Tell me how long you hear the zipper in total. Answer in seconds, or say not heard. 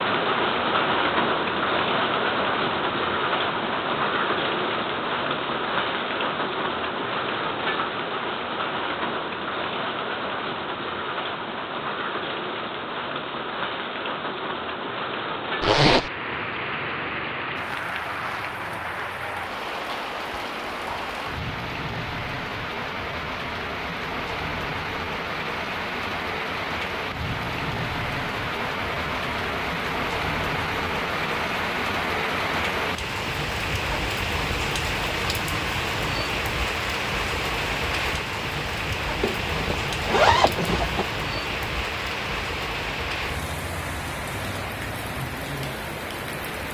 2 s.